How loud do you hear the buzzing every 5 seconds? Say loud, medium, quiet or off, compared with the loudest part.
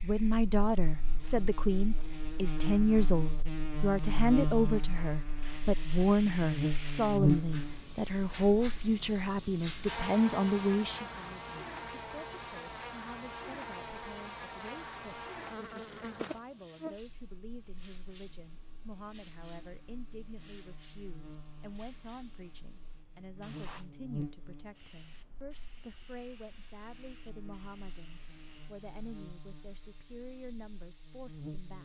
medium, loud, medium, quiet, quiet, quiet, quiet.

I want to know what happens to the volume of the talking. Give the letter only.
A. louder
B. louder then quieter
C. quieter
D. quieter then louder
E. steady
C.